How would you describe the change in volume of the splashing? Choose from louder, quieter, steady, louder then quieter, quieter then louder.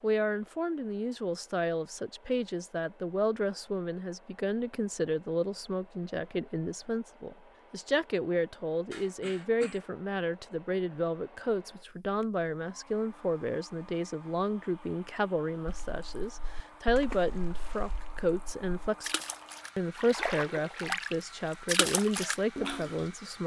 quieter then louder.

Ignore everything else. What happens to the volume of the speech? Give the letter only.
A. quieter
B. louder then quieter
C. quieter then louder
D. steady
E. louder
D.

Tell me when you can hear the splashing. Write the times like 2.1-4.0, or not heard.
15.7-23.1.